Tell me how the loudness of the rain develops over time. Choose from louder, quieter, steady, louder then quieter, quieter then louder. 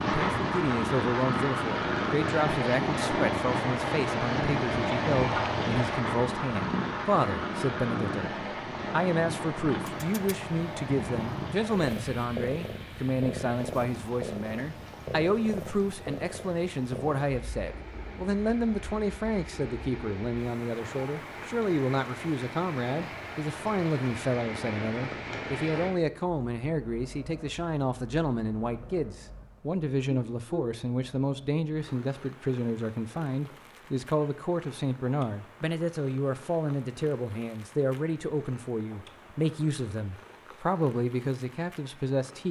quieter then louder.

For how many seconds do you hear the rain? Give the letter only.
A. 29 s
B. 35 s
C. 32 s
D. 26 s
D.